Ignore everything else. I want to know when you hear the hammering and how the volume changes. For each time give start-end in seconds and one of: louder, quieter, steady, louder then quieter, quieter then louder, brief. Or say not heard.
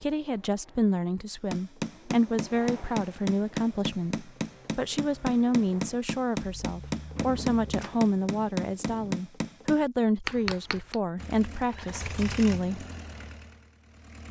1.5-11.0 steady.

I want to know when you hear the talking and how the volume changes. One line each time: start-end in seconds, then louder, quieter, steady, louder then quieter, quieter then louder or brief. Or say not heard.
0.0-12.8 steady.